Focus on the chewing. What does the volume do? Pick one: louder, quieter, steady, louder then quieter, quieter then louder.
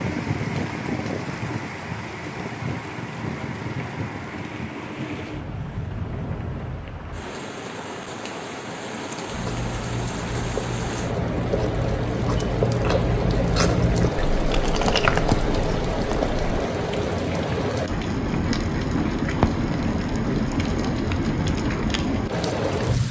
louder.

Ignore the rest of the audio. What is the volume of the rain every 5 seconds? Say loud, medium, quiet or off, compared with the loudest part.
medium, medium, loud, loud, loud.